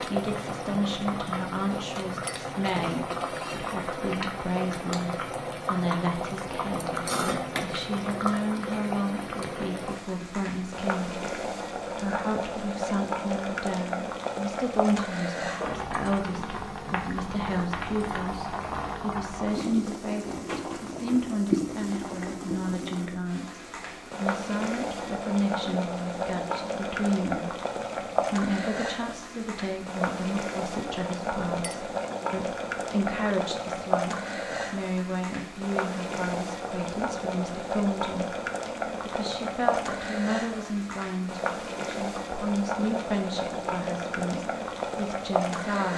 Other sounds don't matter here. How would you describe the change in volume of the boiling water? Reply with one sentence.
The volume of the boiling water stays about the same.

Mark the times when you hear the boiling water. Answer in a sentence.
The boiling water can be heard from 0.0 to 45.9 s.